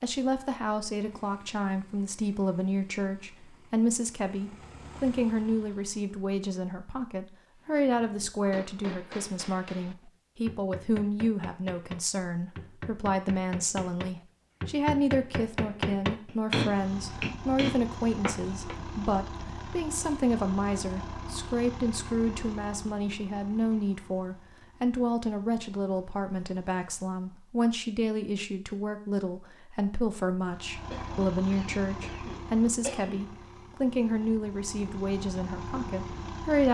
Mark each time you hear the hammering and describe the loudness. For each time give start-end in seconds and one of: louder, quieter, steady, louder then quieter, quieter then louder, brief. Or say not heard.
7.6-18.8 louder.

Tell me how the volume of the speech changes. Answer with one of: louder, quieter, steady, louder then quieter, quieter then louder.
steady.